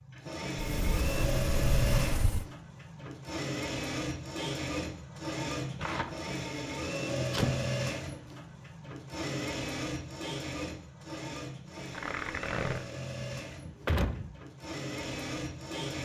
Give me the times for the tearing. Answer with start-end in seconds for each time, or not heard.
5.8-6.2, 11.9-12.8.